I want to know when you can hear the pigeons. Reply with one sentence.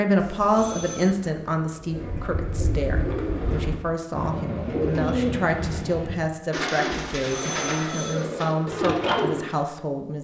You can hear the pigeons from 0.5 to 9.4 s.